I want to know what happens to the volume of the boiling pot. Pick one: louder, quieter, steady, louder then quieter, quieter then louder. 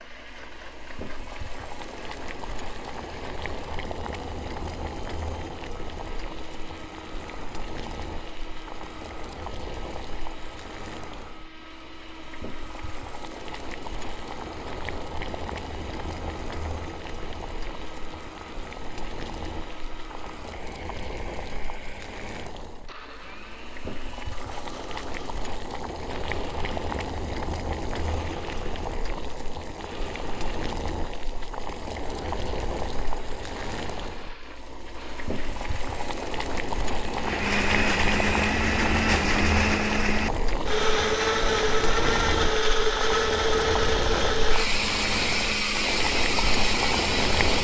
louder.